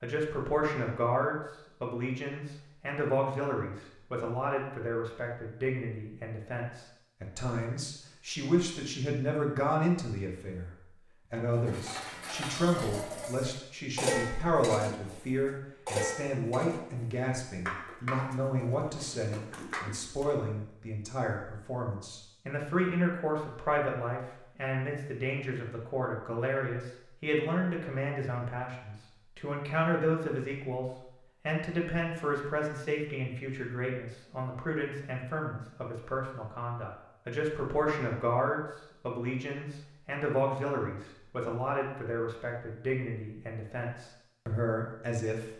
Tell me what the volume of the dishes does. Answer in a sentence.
The volume of the dishes goes up, then down.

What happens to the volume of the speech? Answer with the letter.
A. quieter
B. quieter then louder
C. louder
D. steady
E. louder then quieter
D.